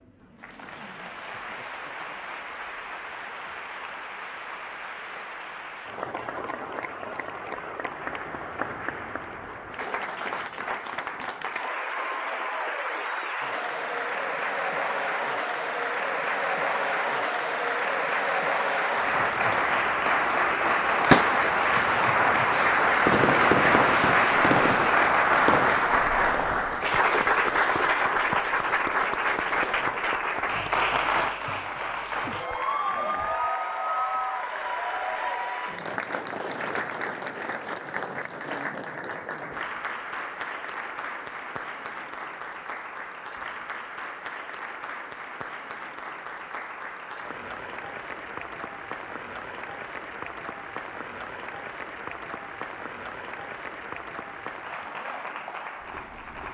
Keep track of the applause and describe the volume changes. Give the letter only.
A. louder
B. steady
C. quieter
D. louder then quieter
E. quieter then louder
D.